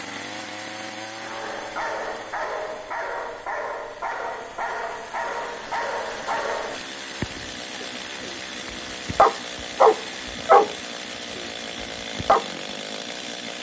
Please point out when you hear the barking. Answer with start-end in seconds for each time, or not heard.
1.1-12.4.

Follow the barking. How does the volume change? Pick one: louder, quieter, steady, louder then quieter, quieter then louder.
louder.